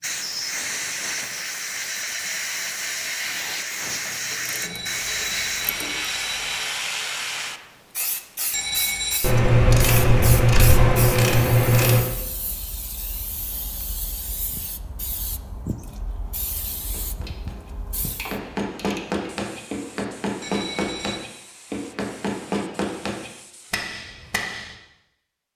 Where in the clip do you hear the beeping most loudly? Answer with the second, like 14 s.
9 s.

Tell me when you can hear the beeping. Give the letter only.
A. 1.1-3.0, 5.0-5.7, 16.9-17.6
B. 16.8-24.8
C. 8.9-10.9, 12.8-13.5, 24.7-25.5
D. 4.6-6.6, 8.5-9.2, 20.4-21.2
D.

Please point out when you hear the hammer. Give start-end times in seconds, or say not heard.
16.8-24.8.